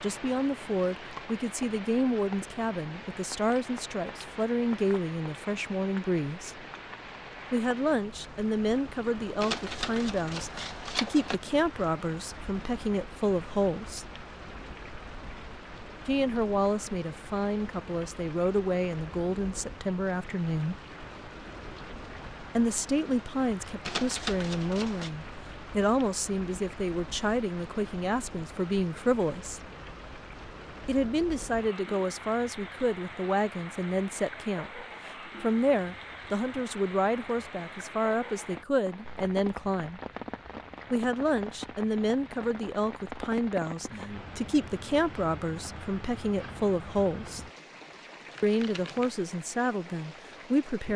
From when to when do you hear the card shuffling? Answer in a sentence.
You can hear the card shuffling from 9.4 to 11.3 s, from 23.9 to 25.1 s and from 48.2 to 49.1 s.